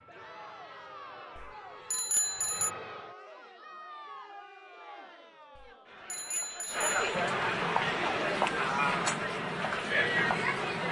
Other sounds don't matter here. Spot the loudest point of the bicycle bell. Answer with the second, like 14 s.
2 s.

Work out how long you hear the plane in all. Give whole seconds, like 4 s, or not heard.
7 s.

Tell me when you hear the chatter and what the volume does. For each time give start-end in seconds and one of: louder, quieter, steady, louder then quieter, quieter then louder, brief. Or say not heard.
0.1-10.8 louder.